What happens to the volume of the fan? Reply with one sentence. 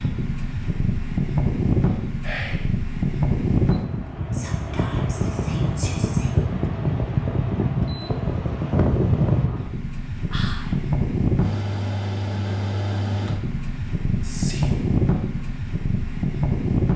The volume of the fan stays about the same.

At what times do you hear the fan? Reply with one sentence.
You can hear the fan from 0.0 to 16.9 s.